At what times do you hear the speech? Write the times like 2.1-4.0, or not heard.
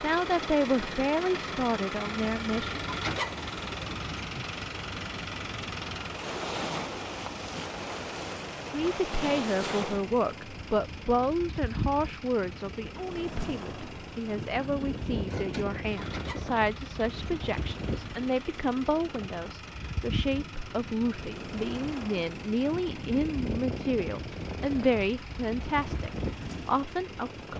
0.0-2.8, 8.7-27.5.